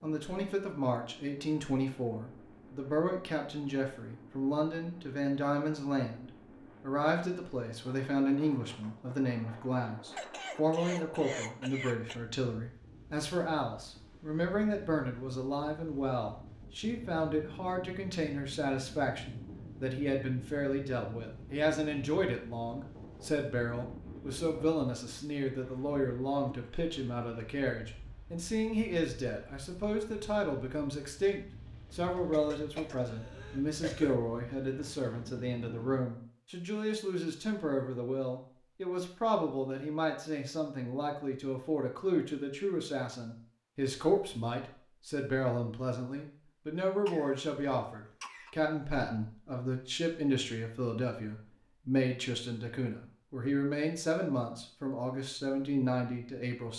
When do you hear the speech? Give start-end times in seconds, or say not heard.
0.0-56.7.